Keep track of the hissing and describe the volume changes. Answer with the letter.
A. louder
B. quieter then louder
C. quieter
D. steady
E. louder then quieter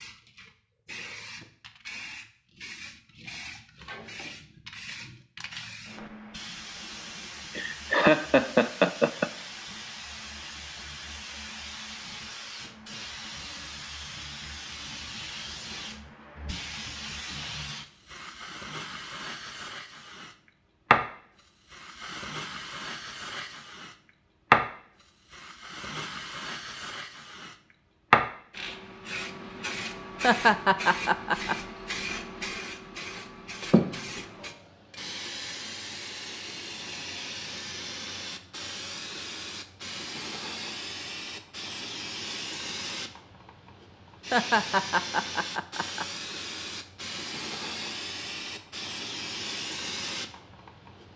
E.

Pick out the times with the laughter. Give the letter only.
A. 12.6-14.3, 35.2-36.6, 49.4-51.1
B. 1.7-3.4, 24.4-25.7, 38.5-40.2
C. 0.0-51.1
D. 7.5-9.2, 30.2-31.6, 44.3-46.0
D.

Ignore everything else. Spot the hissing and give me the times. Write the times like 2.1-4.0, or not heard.
0.0-51.1.